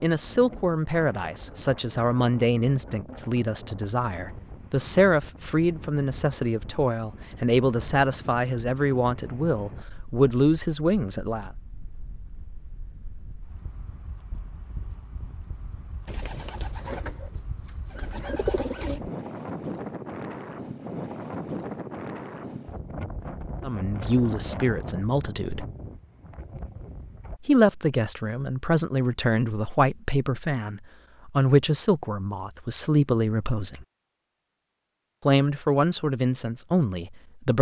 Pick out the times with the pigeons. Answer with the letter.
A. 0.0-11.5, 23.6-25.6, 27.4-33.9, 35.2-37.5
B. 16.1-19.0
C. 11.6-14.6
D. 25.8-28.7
B.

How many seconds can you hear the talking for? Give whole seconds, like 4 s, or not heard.
22 s.